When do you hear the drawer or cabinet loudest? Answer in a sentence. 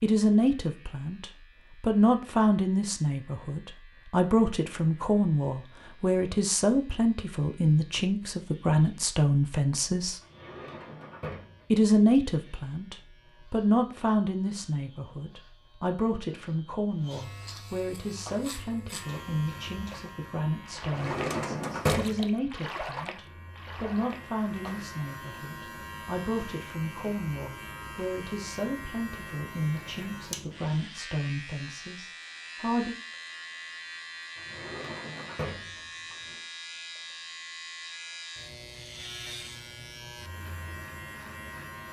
The volume of the drawer or cabinet peaks at 22 seconds.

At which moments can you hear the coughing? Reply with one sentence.
You can't hear the coughing here.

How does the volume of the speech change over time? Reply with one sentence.
The volume of the speech goes down.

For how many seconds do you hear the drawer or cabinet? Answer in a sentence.
The drawer or cabinet can be heard for 5 seconds in total.